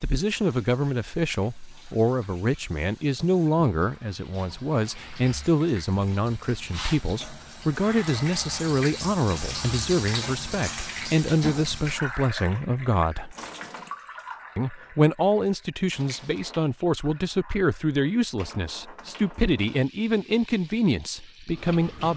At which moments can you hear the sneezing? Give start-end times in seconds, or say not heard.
not heard.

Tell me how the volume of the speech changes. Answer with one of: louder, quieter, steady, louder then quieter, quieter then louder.
steady.